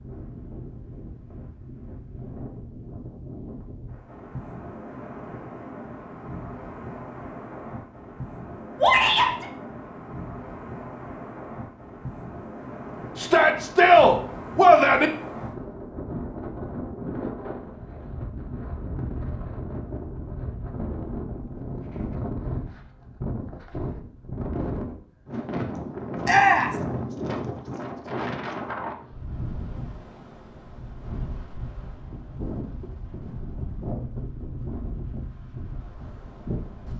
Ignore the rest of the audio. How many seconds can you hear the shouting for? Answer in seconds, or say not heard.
3 s.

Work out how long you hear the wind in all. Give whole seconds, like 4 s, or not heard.
37 s.